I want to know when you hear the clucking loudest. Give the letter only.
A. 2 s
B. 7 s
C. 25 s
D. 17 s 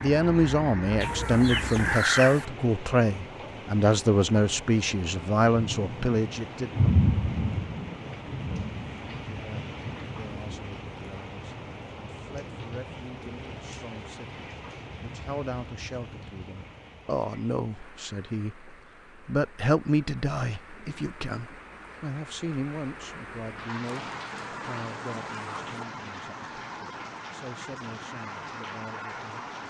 A.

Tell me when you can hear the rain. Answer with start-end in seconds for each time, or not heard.
0.0-29.6.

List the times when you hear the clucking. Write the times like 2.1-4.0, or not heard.
1.0-2.5, 23.8-25.9.